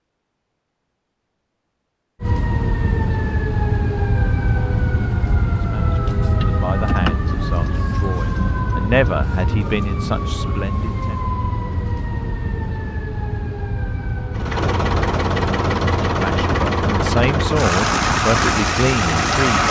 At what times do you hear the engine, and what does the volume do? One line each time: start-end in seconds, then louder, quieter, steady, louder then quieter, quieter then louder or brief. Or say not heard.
14.3-19.6 steady.